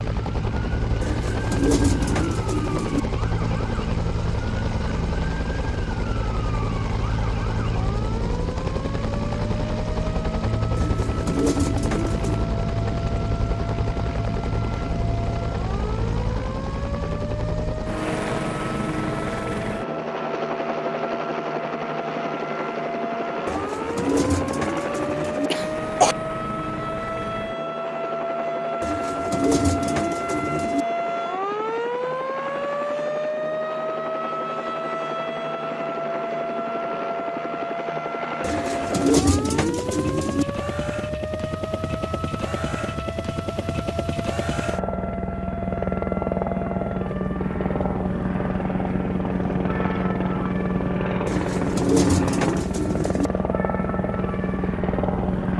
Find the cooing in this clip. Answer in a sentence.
The cooing can be heard from 1.0 to 3.0 s, from 10.8 to 12.5 s, from 23.4 to 25.5 s, from 28.8 to 30.9 s, from 38.4 to 40.5 s and from 51.2 to 53.3 s.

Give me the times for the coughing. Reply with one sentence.
The coughing can be heard from 25.5 to 26.1 s.